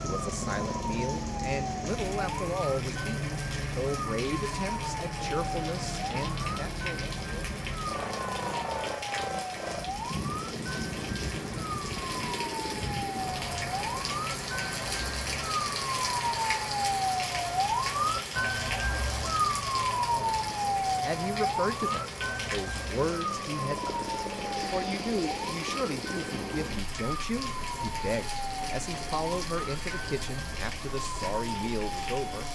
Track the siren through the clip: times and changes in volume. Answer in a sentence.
You can hear the siren from 0.1 to 32.5 s, getting louder then quieter.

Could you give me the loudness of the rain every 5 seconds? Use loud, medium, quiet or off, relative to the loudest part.
medium, medium, loud, loud, medium, medium, medium.